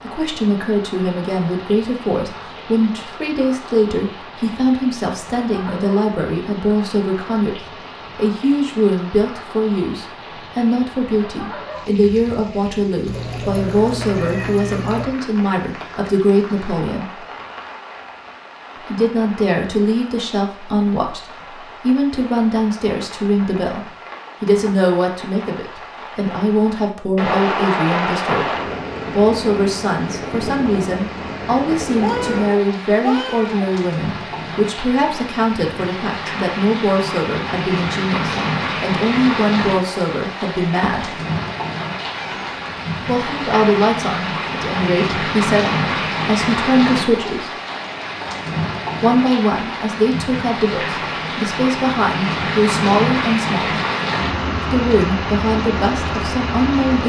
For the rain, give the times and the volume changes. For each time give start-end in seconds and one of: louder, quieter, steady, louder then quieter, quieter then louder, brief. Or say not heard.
0.0-57.0 louder.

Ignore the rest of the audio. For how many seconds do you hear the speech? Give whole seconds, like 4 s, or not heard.
51 s.